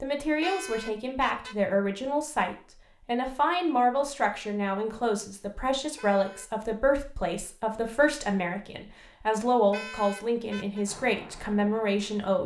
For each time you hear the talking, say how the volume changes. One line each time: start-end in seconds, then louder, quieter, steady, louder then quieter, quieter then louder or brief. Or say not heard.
0.0-12.4 steady.